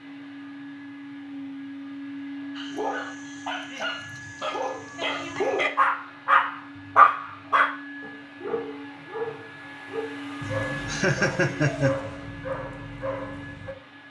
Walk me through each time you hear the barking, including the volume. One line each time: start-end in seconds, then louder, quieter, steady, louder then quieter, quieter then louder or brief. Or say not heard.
2.5-13.8 louder then quieter.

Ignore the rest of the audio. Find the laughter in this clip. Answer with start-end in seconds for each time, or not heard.
10.7-11.9.